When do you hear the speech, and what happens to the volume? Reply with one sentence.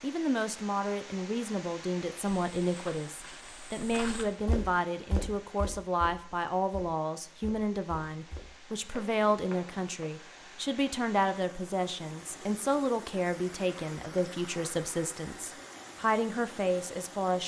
The speech can be heard from 0.0 to 17.4 s, at a steady volume.